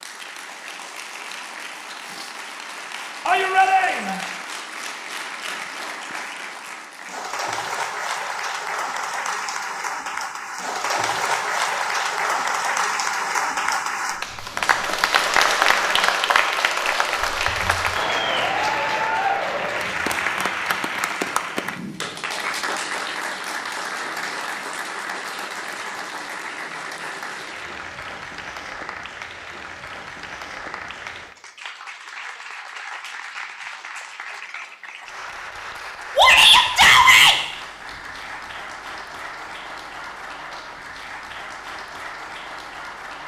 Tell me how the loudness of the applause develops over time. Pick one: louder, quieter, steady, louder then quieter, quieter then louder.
louder then quieter.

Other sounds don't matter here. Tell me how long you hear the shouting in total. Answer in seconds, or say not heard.
2 s.